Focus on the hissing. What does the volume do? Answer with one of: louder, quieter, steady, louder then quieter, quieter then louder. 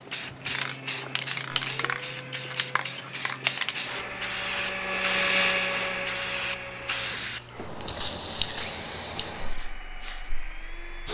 steady.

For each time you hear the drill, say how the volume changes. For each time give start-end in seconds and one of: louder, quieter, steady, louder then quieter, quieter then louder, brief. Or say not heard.
0.2-11.0 louder then quieter.